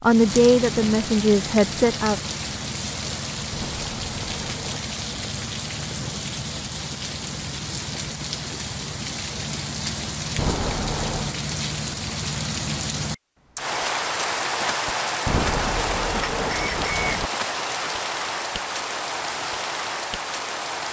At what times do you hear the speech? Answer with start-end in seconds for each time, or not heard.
0.0-2.2.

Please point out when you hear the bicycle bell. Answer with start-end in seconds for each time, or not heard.
3.5-4.9, 10.3-11.3, 15.2-17.3.